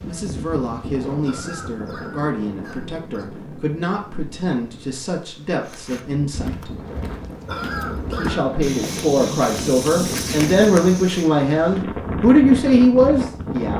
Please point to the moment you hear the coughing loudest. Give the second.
8 s.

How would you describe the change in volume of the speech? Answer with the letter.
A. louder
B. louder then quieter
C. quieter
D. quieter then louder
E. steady
A.